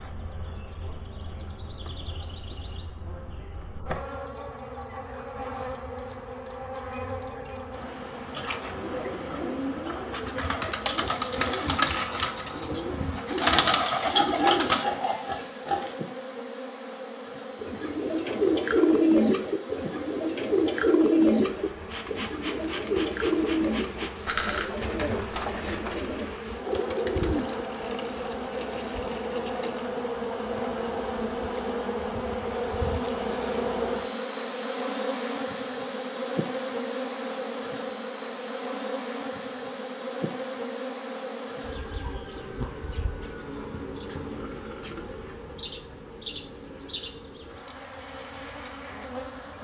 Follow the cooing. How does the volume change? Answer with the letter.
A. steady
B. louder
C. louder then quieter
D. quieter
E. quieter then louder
C.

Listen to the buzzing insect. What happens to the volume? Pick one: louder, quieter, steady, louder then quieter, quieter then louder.
louder then quieter.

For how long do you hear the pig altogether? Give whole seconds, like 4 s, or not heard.
2 s.